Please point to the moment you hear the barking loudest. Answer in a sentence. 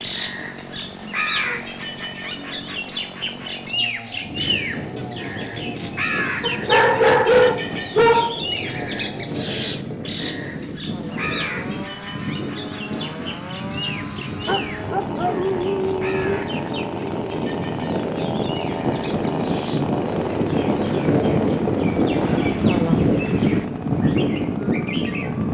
The loudest moment of the barking is at 7 seconds.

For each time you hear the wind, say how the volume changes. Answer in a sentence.
The wind can be heard from 4.2 to 25.4 s, getting louder.